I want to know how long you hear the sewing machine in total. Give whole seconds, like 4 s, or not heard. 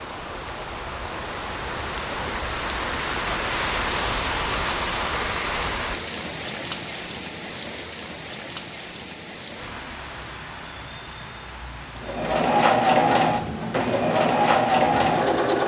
4 s.